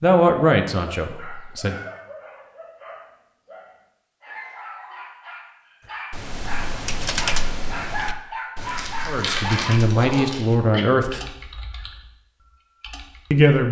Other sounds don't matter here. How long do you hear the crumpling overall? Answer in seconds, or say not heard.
2 s.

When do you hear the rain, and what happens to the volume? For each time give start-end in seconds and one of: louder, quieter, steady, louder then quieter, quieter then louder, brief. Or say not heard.
not heard.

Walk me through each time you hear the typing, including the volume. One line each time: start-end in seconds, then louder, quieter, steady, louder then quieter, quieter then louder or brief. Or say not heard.
6.1-13.4 quieter.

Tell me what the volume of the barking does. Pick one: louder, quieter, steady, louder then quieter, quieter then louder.
louder.